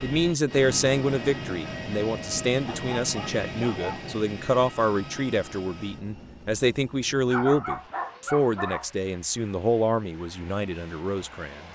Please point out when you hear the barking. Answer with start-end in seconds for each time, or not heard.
2.6-4.2, 7.2-8.9.